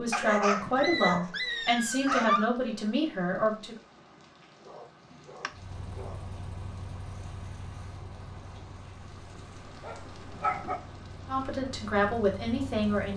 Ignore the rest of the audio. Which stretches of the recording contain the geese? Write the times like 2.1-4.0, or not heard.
not heard.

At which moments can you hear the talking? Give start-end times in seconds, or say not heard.
0.0-3.8, 11.2-13.1.